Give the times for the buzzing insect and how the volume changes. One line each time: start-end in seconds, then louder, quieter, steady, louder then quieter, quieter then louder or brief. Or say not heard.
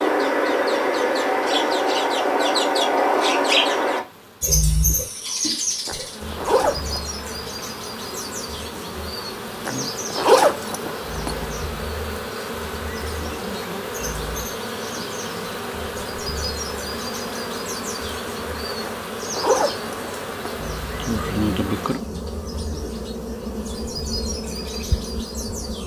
0.0-25.8 louder.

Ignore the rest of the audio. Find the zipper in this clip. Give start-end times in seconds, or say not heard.
5.8-7.0, 9.7-11.4, 18.8-20.6.